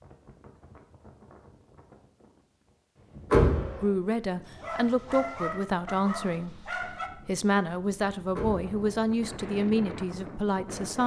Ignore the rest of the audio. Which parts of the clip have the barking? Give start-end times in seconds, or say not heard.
4.5-7.1.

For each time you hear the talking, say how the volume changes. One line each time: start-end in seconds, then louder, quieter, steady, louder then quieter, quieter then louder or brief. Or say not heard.
3.8-11.0 steady.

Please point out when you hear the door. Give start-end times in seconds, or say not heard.
3.3-3.8, 8.3-9.1.